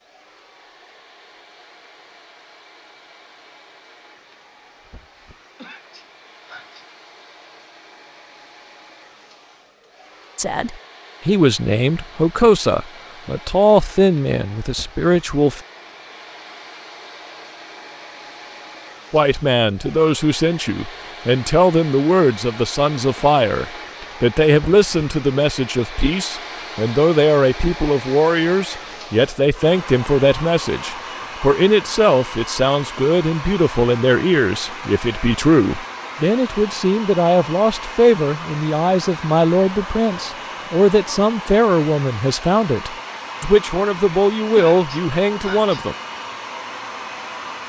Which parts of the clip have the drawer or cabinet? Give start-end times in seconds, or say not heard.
not heard.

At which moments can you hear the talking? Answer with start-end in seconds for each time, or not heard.
10.3-15.6, 19.1-46.0.